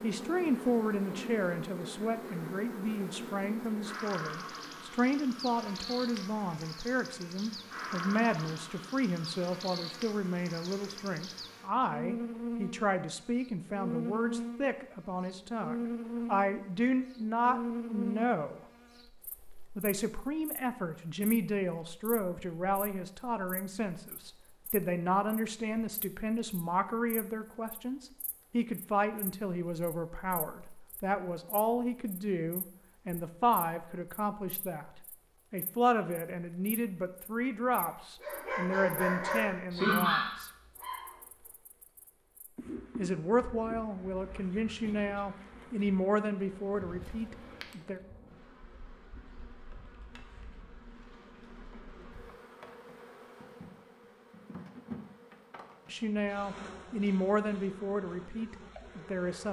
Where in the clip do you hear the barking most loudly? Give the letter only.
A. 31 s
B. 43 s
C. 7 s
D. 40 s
D.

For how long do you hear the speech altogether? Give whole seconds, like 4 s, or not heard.
47 s.